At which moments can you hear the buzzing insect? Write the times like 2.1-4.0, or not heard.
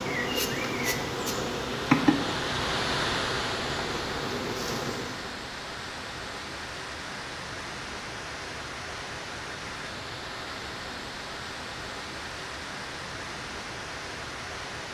0.0-5.3.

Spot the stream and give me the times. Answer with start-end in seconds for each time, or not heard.
0.0-14.8.